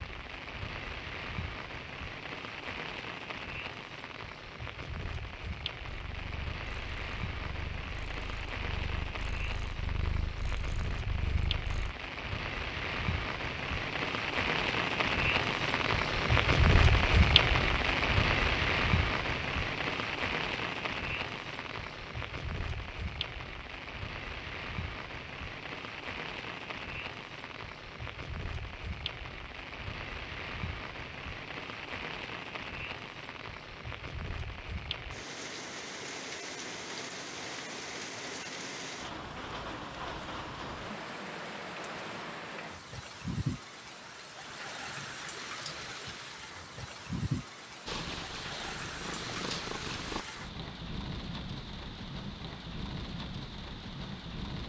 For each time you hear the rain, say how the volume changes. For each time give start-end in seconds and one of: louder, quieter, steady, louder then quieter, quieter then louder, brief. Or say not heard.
0.0-54.6 louder then quieter.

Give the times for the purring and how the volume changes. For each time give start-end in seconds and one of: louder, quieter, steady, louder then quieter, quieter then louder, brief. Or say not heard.
5.9-11.9 louder
47.9-50.2 brief.